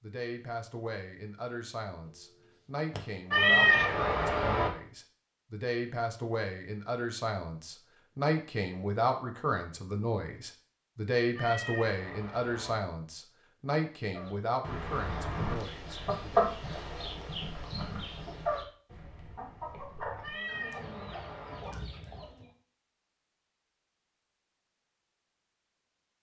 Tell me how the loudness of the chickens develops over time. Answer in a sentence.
The loudness of the chickens goes up, then down.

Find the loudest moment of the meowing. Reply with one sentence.
The loudest moment of the meowing is at 4 seconds.